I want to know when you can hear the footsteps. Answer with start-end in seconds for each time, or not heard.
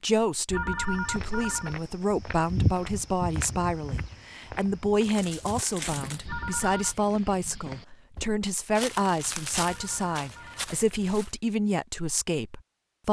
1.1-11.3.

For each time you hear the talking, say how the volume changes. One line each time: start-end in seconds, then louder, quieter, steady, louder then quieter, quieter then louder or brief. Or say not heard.
0.0-13.0 steady.